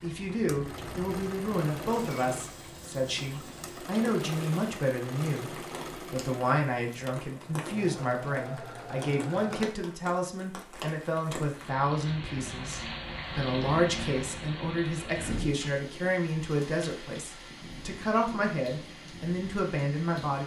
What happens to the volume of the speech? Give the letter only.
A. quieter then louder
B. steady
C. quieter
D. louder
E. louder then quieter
B.